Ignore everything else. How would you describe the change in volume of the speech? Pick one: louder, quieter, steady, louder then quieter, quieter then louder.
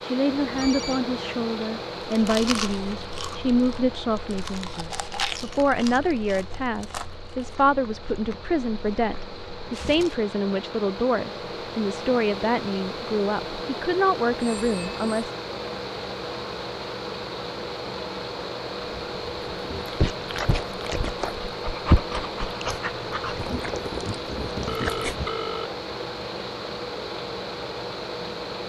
steady.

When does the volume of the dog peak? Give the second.
22 s.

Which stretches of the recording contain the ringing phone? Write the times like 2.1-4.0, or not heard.
0.4-1.0, 14.3-15.2, 24.6-25.7.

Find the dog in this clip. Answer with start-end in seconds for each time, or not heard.
18.8-25.3.